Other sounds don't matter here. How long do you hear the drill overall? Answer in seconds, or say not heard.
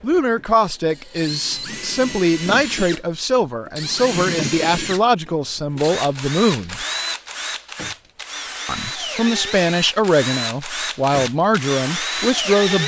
13 s.